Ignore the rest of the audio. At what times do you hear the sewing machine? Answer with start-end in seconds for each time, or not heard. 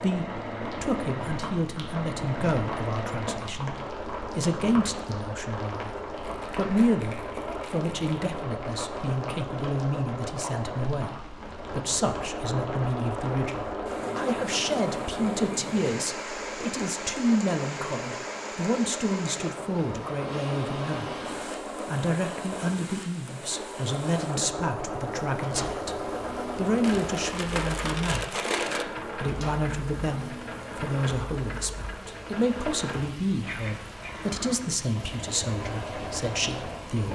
0.0-37.0.